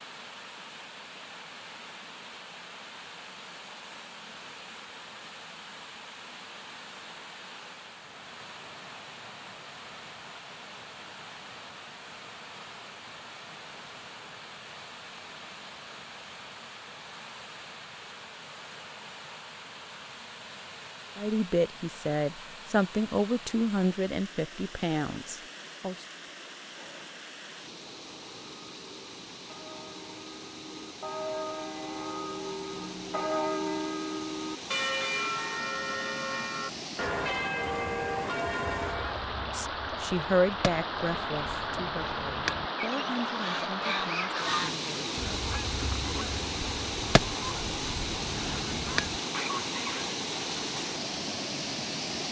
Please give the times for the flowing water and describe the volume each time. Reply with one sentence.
You can hear the flowing water from 0.0 to 52.2 s, getting louder.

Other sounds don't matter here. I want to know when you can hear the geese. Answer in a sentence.
You can hear the geese from 38.9 to 50.1 s.